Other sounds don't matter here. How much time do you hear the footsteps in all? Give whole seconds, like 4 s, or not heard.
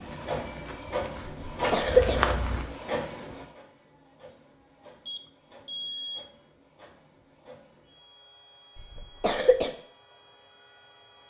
3 s.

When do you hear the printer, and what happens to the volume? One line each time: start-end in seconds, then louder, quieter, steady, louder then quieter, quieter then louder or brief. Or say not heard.
0.0-11.2 quieter.